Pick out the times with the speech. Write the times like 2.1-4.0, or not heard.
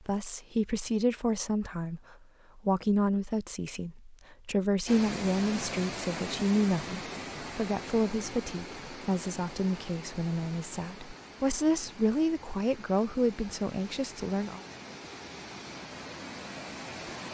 0.1-14.6.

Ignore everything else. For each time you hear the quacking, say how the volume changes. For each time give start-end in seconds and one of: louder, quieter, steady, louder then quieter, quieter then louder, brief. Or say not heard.
not heard.